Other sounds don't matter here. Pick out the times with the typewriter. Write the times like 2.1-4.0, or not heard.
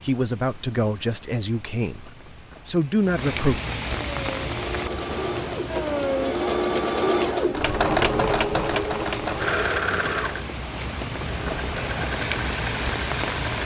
not heard.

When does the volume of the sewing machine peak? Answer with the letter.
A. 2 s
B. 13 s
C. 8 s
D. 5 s
C.